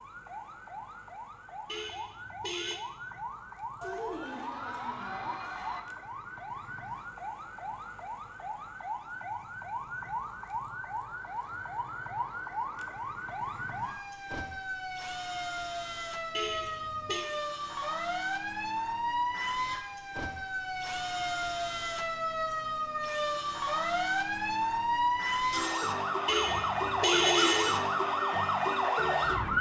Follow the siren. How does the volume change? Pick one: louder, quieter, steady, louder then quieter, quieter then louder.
louder.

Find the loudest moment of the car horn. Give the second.
27 s.